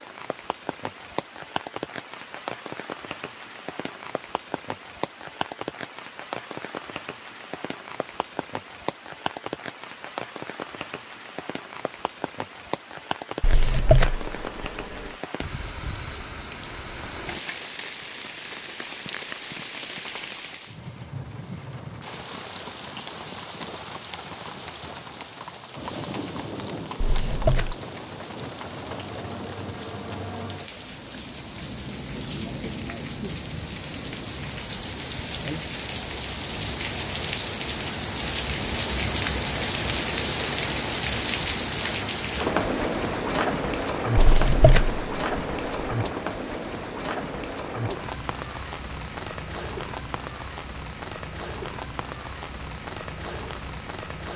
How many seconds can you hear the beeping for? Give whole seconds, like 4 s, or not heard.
4 s.